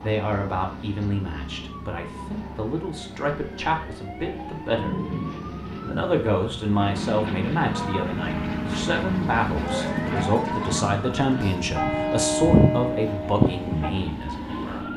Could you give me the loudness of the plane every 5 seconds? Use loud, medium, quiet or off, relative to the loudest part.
medium, loud, loud.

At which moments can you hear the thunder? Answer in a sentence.
The thunder can be heard from 4.7 to 6.1 s.